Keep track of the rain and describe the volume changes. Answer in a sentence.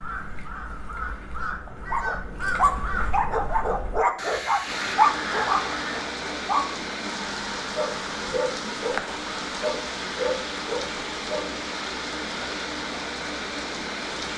The loudness of the rain stays about the same.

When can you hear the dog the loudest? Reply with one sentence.
The loudest moment of the dog is at 5 seconds.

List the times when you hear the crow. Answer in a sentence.
You can hear the crow from 0.0 to 6.0 s.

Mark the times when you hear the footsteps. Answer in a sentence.
You can't hear the footsteps here.